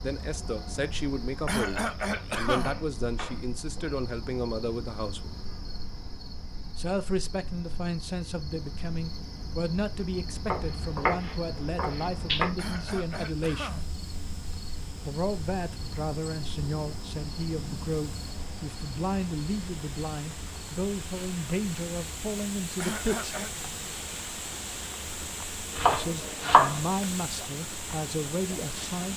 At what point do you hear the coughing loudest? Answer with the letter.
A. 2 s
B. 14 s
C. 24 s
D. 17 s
A.